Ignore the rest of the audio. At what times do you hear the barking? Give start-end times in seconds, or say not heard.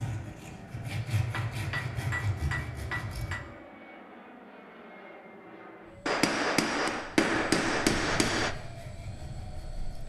not heard.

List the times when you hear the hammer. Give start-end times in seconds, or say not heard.
0.9-3.4, 6.0-8.6.